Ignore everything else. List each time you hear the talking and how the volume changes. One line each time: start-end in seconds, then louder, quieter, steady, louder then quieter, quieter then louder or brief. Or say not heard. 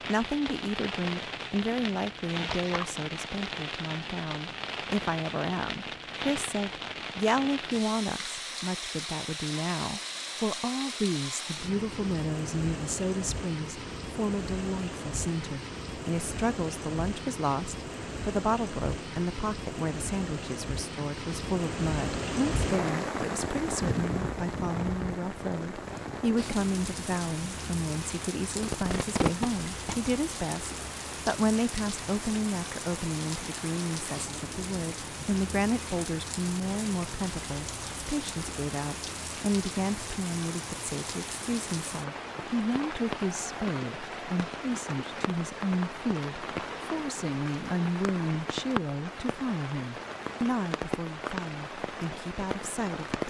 0.1-53.2 steady.